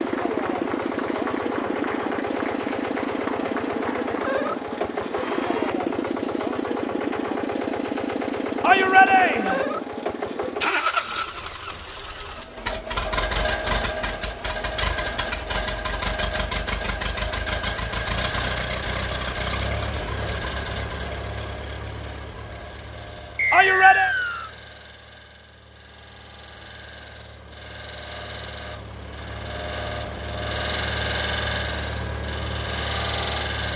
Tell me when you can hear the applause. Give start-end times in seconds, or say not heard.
0.0-5.8.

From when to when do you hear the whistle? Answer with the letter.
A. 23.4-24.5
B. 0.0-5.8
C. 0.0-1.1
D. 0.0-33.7
A.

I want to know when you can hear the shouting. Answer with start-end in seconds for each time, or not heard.
8.6-9.7, 23.5-24.1.